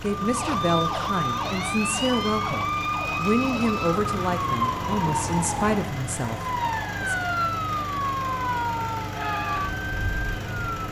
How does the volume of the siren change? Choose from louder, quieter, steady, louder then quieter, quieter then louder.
steady.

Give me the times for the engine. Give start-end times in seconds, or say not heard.
0.0-10.8.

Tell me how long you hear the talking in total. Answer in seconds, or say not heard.
7 s.